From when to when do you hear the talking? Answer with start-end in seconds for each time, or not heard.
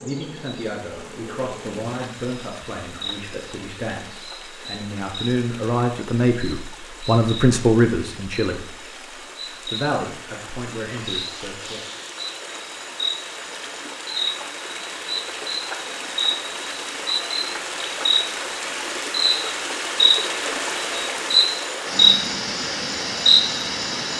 0.0-8.9, 9.5-11.8.